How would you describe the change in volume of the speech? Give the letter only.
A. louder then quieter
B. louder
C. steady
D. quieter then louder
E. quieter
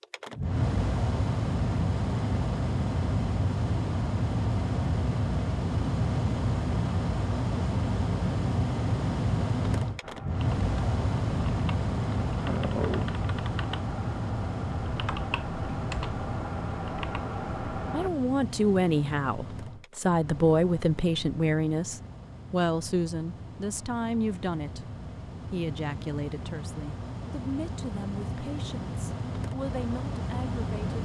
E.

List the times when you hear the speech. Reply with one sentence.
You can hear the speech from 17.9 to 24.9 s and from 25.5 to 31.0 s.